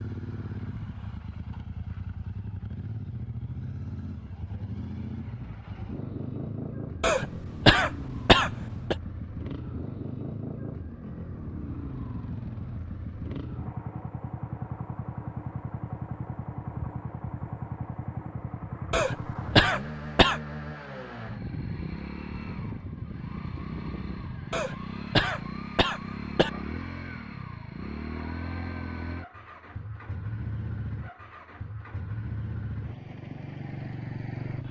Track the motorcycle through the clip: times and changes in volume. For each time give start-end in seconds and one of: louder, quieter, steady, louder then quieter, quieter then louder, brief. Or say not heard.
0.0-34.6 steady.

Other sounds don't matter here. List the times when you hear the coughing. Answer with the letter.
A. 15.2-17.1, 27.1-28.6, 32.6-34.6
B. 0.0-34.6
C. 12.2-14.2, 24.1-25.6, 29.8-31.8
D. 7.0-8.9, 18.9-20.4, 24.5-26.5
D.